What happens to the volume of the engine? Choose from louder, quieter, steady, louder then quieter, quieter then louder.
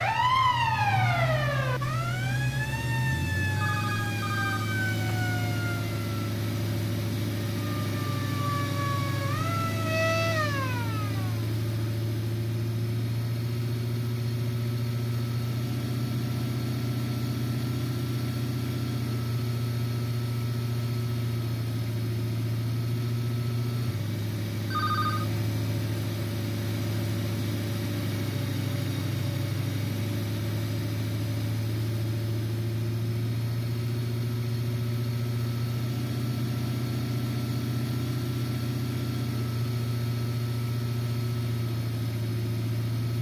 steady.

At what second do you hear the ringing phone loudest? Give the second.
25 s.